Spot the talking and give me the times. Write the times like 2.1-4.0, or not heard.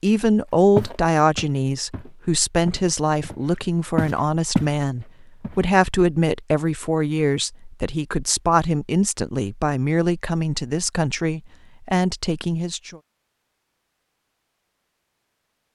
0.0-13.0.